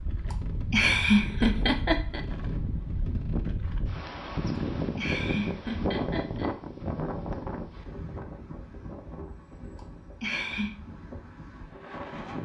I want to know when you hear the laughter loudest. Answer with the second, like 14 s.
1 s.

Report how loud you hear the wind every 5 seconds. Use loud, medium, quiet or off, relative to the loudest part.
loud, loud, medium.